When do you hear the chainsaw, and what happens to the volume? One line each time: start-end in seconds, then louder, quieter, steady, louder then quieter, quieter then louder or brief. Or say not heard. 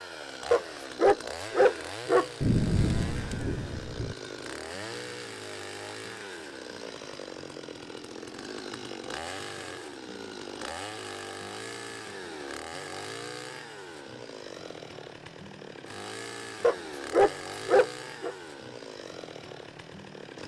0.0-20.4 steady.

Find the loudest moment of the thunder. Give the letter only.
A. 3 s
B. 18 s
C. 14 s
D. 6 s
A.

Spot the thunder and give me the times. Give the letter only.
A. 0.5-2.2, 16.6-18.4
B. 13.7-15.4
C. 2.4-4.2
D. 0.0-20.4
C.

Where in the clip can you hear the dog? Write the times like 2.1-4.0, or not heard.
0.5-2.2, 16.6-18.4.